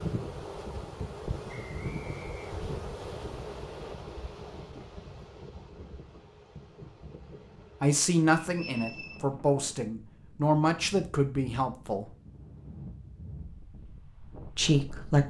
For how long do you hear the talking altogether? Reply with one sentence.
The talking can be heard for 5 seconds in total.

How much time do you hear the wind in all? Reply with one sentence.
You can hear the wind for 15 seconds altogether.